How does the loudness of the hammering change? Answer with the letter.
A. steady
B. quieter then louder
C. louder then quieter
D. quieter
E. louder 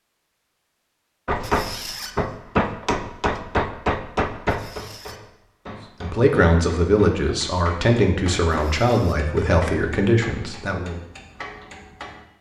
D.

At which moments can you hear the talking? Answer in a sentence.
You can hear the talking from 6.0 to 11.0 s.